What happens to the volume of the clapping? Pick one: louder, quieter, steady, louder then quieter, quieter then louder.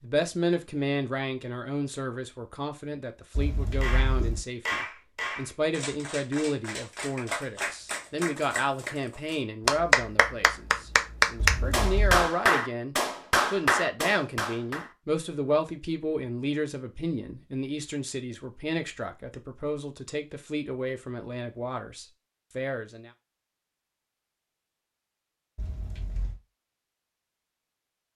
louder.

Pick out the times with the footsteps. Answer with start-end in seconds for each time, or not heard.
not heard.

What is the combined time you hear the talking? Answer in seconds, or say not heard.
23 s.